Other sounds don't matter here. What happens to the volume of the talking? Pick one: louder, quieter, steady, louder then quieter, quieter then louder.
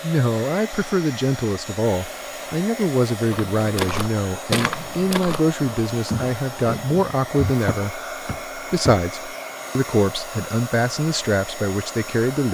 steady.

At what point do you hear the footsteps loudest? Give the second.
5 s.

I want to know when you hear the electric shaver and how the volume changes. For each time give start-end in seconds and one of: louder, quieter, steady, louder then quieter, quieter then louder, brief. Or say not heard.
not heard.